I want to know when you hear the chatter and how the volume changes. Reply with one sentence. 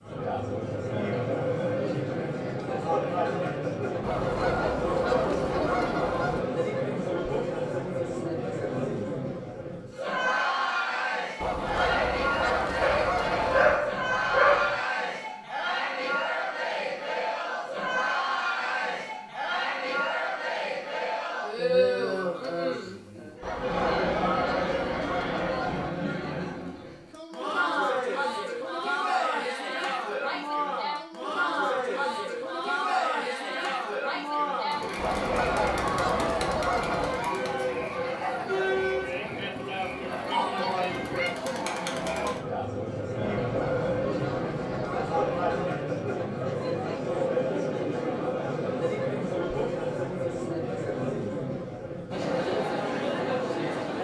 The chatter can be heard from 0.0 to 53.9 s, at a steady volume.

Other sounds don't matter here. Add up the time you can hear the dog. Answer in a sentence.
You can hear the dog for 2 seconds altogether.